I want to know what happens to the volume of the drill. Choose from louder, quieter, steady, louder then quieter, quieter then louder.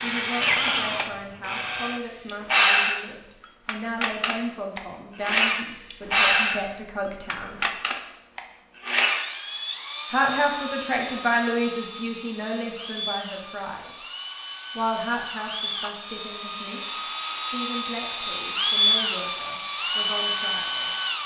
quieter then louder.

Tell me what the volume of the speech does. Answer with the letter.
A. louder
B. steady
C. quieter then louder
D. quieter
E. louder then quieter
E.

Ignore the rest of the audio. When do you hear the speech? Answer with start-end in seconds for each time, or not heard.
0.0-7.6, 10.1-13.9, 14.8-20.9.